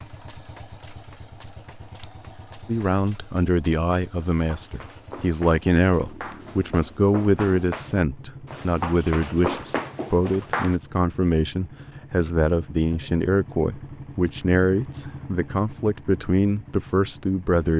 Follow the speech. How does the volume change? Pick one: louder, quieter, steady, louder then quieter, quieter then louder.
steady.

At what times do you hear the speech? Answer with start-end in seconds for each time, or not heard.
2.6-17.7.